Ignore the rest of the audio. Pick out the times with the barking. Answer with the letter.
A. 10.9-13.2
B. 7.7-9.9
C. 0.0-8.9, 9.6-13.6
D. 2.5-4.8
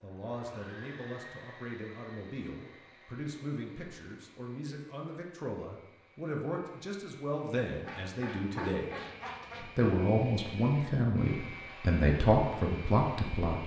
B.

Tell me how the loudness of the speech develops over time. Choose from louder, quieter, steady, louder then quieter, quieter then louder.
louder.